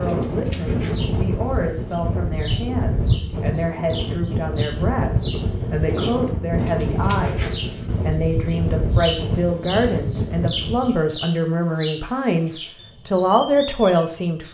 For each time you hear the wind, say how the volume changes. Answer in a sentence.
You can hear the wind from 0.0 to 11.0 s, at a steady volume.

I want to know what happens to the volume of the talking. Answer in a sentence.
The loudness of the talking goes up.